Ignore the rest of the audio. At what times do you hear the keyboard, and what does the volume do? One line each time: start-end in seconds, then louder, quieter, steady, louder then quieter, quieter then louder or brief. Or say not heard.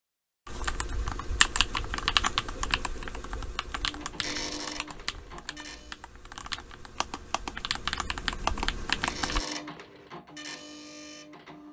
0.5-9.4 quieter then louder.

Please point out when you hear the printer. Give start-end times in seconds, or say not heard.
3.8-6.1, 8.9-11.6.